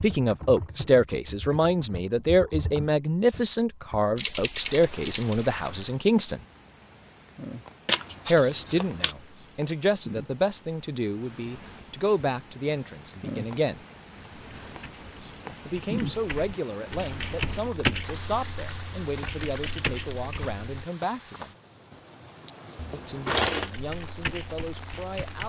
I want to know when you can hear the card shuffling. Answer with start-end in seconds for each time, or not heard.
7.8-9.2, 22.8-23.7.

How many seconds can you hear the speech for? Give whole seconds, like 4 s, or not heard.
20 s.